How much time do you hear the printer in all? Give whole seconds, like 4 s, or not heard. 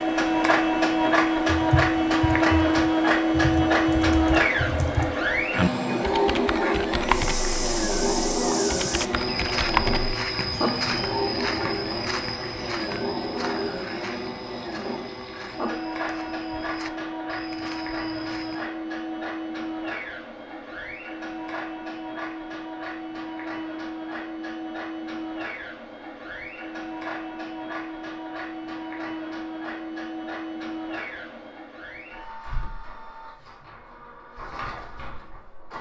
36 s.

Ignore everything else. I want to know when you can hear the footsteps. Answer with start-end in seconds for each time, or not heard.
7.0-18.6.